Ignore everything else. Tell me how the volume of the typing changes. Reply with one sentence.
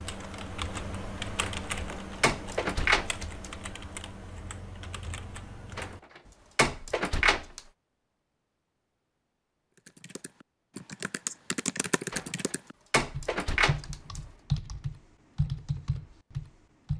The volume of the typing goes down, then up.